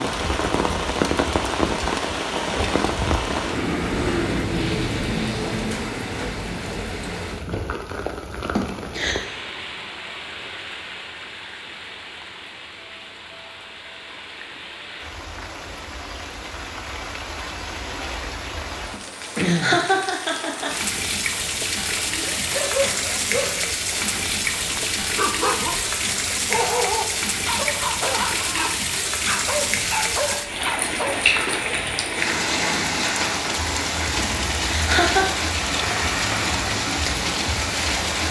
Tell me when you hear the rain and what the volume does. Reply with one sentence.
The rain can be heard from 0.0 to 38.2 s, getting quieter then louder.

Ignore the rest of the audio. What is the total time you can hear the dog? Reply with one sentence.
The dog can be heard for 9 seconds in total.